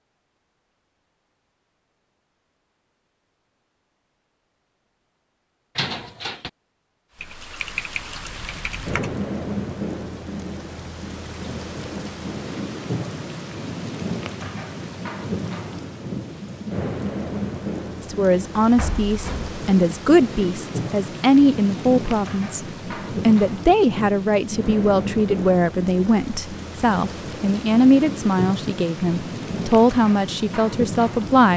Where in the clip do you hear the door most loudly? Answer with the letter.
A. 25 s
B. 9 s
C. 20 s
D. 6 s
D.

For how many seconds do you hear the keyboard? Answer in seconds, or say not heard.
2 s.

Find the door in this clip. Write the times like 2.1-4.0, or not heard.
5.8-6.5, 18.8-19.6.